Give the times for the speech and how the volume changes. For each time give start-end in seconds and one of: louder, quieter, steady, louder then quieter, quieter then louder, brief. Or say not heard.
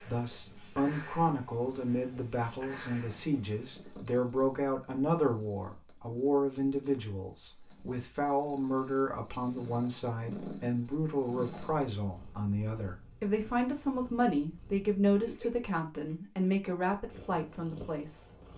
0.0-18.3 steady.